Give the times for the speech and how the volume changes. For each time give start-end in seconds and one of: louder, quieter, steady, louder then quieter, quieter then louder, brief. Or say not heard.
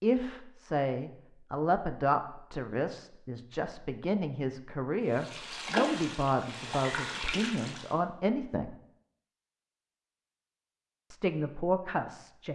0.0-8.8 steady
11.1-12.4 brief.